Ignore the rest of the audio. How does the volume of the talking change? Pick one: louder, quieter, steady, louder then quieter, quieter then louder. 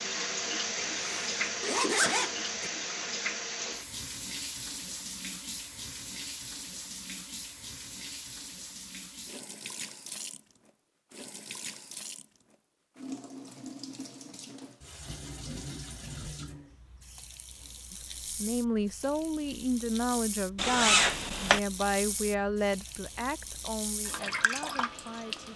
quieter.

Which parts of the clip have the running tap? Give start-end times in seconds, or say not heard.
0.0-25.5.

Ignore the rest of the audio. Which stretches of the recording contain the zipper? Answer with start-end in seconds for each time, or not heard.
0.8-2.7, 20.6-21.6.